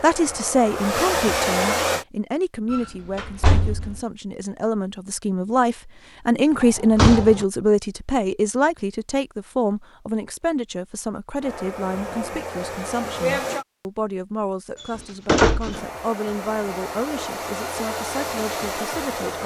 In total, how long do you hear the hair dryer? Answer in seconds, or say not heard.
8 s.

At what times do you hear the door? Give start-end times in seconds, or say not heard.
2.7-4.0, 6.6-7.5, 14.8-15.8.